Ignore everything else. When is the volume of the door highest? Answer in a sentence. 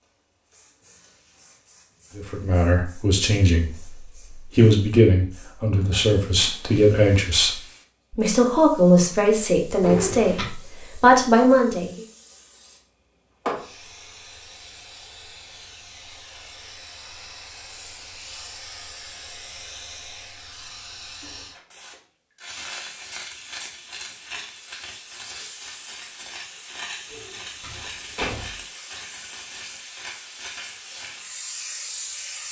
The loudest moment of the door is at 10 seconds.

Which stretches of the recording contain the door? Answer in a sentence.
You can hear the door from 9.8 to 10.5 s and from 27.1 to 28.6 s.